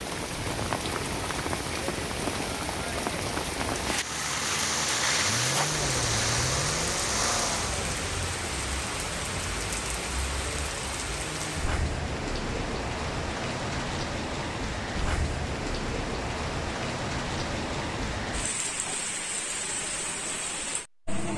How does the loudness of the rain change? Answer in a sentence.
The volume of the rain stays about the same.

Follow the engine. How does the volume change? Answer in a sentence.
The loudness of the engine stays about the same.